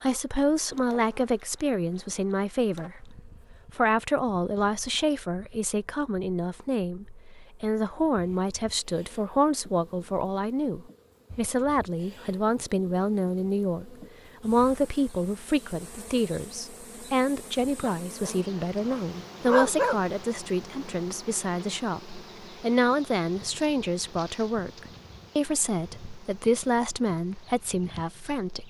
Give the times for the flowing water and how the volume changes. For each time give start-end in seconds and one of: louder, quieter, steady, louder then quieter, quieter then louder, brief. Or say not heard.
not heard.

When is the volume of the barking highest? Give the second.
20 s.